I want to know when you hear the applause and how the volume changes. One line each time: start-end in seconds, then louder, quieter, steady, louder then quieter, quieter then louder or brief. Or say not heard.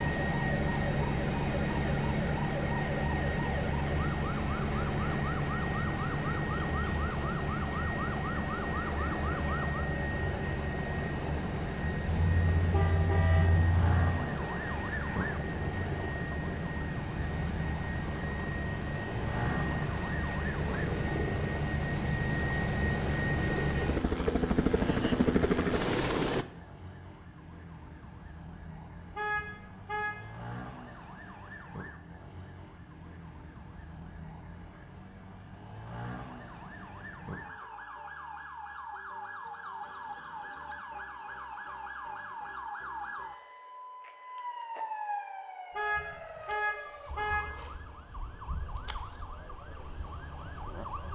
not heard.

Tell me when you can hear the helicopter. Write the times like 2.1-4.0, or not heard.
0.0-26.4.